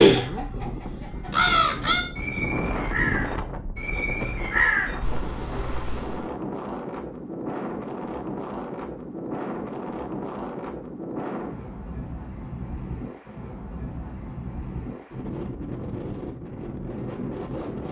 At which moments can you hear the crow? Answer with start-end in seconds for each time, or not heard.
0.0-6.2.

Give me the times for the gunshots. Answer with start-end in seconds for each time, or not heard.
not heard.